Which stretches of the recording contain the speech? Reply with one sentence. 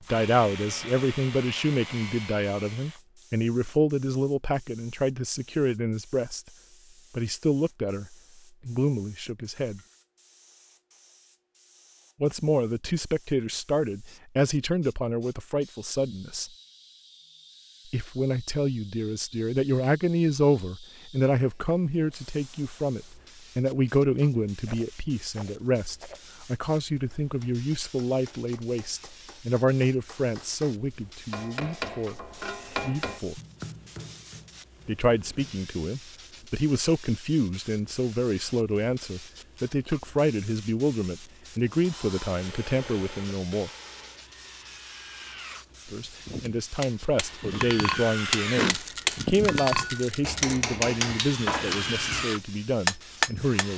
You can hear the speech from 0.1 to 6.5 s, from 7.1 to 9.8 s, from 12.2 to 16.5 s, from 17.9 to 33.4 s, from 34.9 to 43.7 s and from 45.9 to 53.7 s.